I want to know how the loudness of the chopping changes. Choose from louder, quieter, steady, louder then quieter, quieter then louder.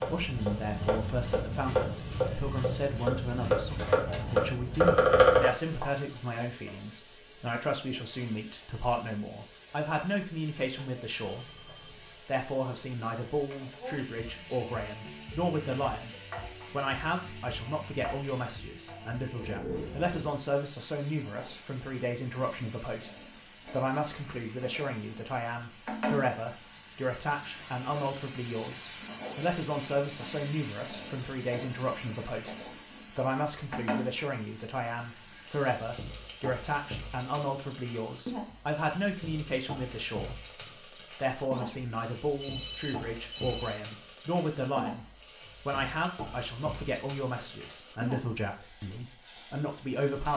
louder.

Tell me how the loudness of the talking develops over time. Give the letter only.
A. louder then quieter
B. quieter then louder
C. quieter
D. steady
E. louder
D.